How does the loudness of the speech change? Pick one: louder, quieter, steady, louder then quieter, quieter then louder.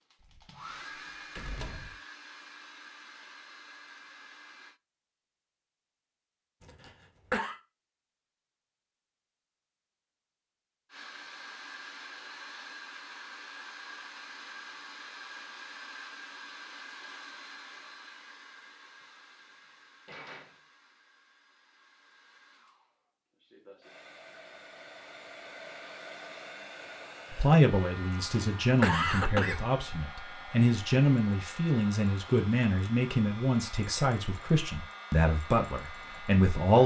steady.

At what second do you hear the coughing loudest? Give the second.
29 s.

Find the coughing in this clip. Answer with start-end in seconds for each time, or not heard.
6.6-7.5, 28.1-29.6.